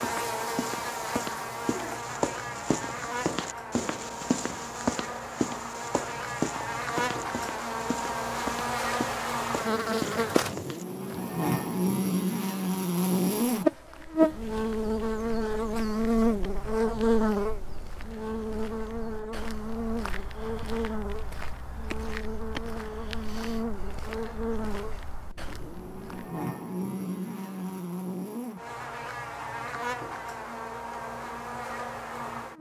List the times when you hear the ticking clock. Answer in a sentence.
The ticking clock can't be heard in this clip.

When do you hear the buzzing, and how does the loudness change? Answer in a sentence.
You can hear the buzzing from 0.0 to 32.5 s, getting louder then quieter.